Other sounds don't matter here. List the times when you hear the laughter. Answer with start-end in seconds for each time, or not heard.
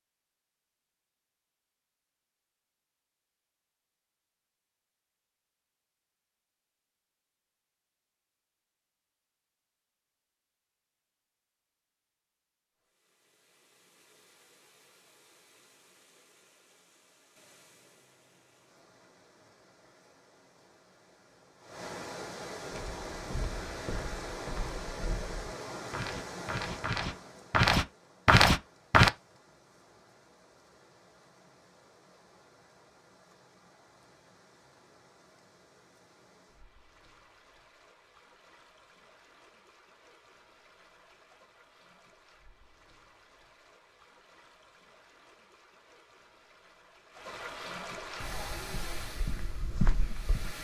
not heard.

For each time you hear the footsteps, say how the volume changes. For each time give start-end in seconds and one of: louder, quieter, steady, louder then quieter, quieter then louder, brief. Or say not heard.
22.7-29.1 louder
48.2-50.5 brief.